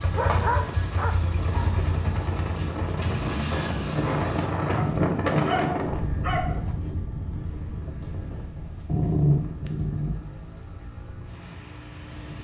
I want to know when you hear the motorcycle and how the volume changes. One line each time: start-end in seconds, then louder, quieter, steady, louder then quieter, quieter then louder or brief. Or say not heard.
0.0-12.3 quieter.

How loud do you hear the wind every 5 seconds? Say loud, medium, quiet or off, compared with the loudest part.
loud, loud, quiet.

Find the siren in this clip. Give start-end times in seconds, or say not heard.
not heard.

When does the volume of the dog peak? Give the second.
9 s.